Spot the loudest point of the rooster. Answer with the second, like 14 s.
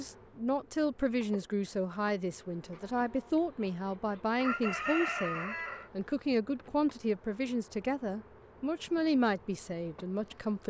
5 s.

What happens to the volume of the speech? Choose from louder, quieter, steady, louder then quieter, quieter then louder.
steady.